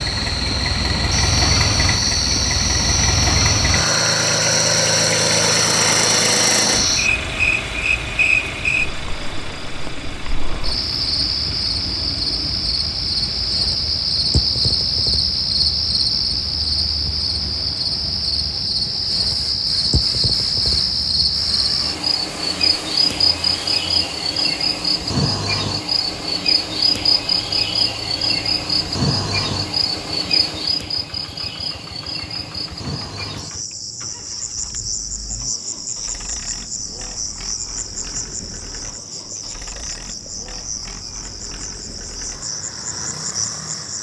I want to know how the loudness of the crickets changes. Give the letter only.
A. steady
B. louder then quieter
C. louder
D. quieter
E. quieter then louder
D.